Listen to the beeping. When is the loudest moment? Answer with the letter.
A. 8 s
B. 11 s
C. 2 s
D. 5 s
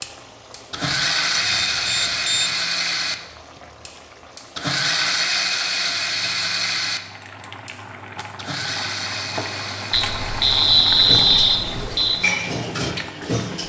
B.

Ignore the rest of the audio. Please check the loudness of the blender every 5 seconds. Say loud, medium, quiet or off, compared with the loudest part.
loud, loud, quiet.